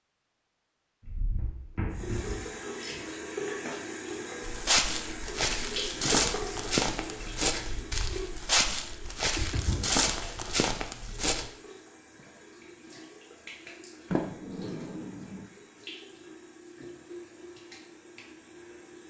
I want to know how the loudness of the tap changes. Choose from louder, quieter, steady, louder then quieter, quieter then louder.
quieter.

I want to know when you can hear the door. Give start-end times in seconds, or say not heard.
1.1-2.5, 9.2-10.0, 14.1-15.4.